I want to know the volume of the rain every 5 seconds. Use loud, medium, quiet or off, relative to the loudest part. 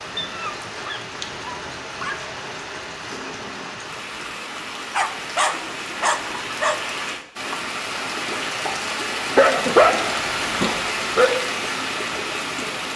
medium, loud, loud.